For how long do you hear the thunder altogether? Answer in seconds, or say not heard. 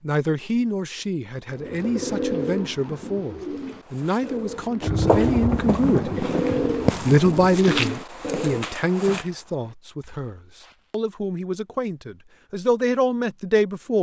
3 s.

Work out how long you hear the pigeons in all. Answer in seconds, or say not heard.
7 s.